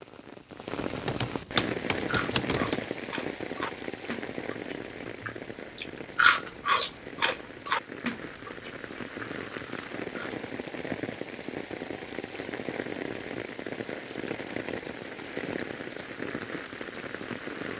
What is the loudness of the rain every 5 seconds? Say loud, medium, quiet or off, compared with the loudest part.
loud, medium, loud, loud.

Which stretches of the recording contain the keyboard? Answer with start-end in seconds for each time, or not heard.
0.9-2.8.